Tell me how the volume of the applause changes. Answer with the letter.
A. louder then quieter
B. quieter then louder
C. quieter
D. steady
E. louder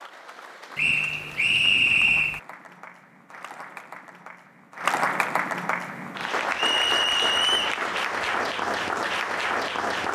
E.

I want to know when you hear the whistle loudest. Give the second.
2 s.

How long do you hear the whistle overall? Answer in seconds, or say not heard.
3 s.